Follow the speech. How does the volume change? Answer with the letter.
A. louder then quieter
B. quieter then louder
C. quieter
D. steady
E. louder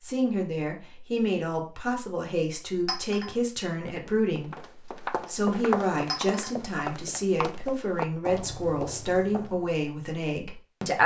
D.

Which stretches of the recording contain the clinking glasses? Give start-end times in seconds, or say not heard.
2.9-3.3, 6.0-6.5.